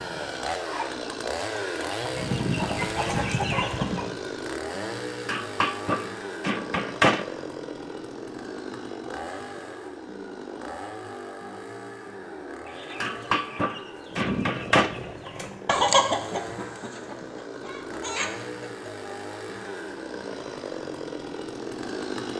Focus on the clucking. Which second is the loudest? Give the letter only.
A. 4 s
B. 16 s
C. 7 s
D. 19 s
B.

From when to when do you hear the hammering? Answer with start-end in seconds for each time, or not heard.
5.2-7.2, 13.0-14.9.